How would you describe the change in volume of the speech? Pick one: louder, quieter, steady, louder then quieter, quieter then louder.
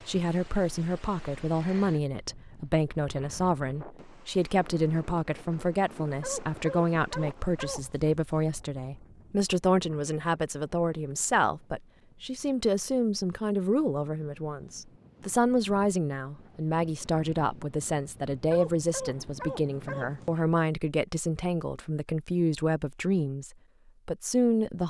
steady.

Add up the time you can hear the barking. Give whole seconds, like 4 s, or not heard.
4 s.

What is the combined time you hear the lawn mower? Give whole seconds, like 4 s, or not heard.
not heard.